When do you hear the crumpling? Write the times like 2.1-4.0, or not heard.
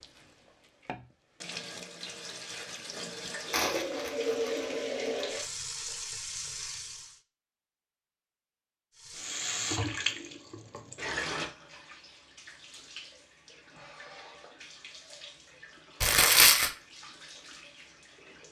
3.5-5.5, 16.0-16.7.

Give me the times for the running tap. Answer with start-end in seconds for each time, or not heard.
0.0-7.2, 8.9-18.4.